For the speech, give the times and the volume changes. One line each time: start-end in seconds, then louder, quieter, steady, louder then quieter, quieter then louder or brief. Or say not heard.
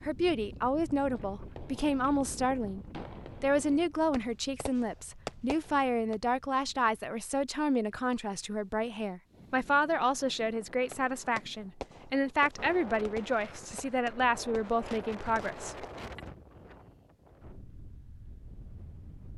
0.0-16.2 steady.